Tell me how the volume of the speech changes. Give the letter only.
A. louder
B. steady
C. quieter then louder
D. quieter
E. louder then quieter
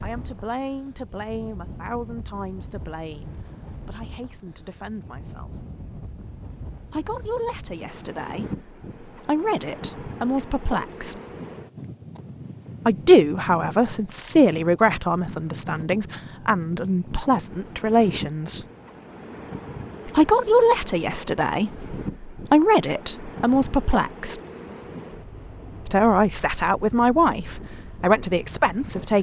A.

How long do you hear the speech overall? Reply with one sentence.
You can hear the speech for 23 seconds altogether.